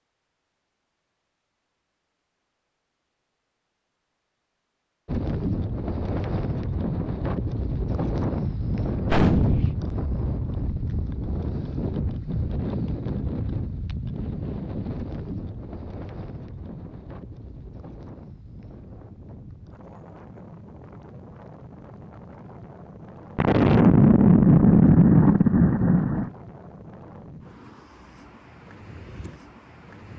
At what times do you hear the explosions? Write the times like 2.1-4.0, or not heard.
9.1-9.8, 23.4-26.3.